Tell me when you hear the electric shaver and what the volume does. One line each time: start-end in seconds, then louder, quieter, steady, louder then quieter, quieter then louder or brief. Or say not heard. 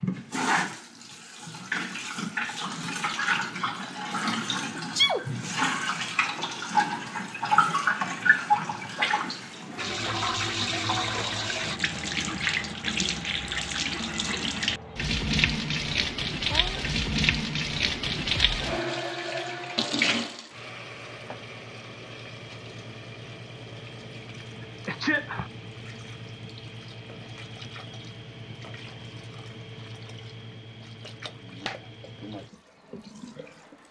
not heard.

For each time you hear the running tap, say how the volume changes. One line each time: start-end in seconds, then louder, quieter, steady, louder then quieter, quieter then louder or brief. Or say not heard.
0.0-33.8 quieter.